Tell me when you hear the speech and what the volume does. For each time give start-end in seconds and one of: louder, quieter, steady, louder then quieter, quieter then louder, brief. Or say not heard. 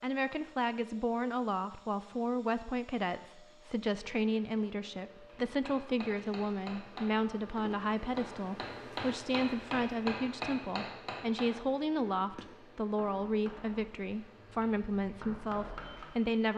0.0-16.5 steady.